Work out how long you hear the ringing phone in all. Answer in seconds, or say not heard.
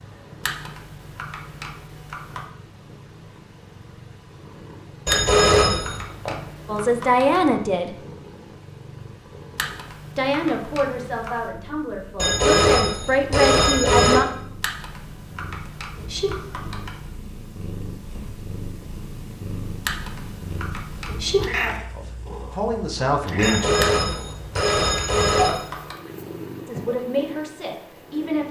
5 s.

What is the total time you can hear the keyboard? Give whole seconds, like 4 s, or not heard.
13 s.